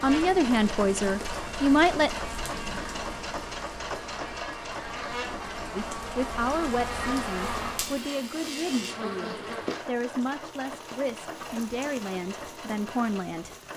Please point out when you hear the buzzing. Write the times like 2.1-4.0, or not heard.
0.0-9.8.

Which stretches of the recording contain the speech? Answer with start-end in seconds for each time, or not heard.
0.0-2.1, 5.8-13.5.